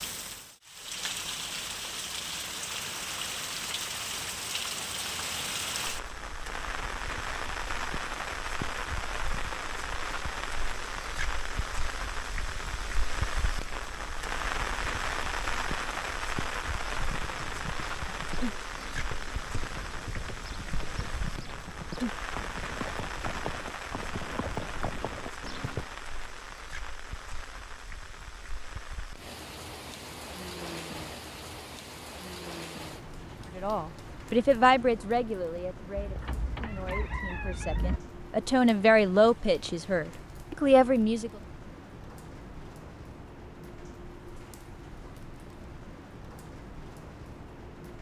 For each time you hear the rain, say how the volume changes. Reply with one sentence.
The rain can be heard from 0.0 to 47.9 s, getting quieter.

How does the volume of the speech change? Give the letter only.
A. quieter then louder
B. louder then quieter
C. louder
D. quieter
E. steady
A.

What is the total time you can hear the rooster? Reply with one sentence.
The rooster can be heard for 2 seconds in total.